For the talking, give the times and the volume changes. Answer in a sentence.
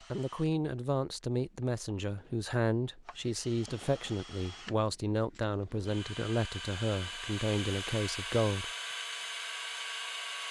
The talking can be heard from 0.1 to 8.7 s, at a steady volume.